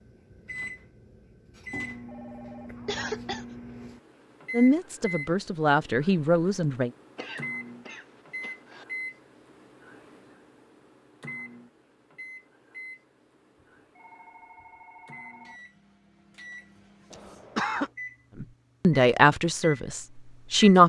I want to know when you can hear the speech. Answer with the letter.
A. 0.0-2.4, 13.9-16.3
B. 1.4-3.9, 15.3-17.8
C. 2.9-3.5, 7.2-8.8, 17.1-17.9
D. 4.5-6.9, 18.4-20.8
D.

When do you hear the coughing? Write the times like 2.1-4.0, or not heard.
2.9-3.5, 7.2-8.8, 17.1-17.9.